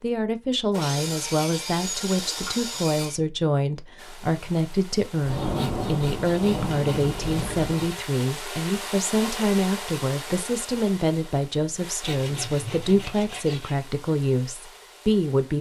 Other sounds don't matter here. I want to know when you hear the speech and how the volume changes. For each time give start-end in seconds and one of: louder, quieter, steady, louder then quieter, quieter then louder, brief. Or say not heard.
0.0-15.5 steady.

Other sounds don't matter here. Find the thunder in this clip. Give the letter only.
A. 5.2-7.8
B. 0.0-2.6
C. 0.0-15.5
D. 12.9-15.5
A.